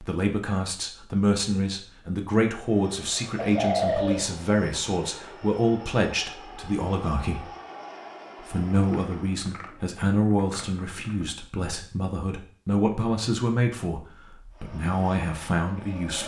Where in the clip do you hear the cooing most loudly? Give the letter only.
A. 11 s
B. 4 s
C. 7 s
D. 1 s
B.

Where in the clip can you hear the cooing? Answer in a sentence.
The cooing can be heard from 3.4 to 4.2 s and from 8.8 to 11.2 s.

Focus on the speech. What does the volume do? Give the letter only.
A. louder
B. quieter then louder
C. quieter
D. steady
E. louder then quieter
D.